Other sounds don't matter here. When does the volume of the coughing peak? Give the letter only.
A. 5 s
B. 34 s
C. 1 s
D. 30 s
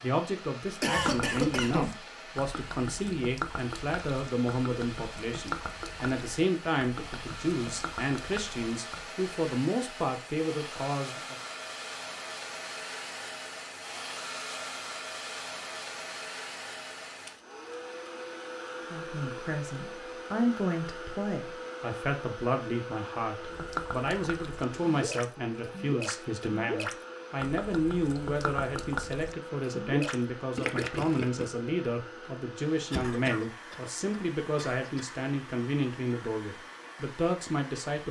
C.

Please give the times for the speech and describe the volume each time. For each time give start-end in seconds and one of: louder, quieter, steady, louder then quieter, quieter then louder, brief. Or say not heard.
0.0-11.3 steady
18.9-38.0 steady.